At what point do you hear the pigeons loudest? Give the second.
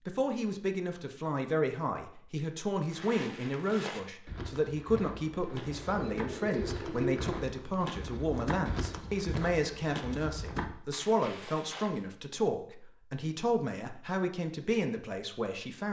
7 s.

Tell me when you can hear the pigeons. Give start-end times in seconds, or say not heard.
5.3-7.5.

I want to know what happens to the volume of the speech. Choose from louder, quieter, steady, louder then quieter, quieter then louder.
steady.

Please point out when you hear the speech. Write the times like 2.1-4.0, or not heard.
0.1-15.8.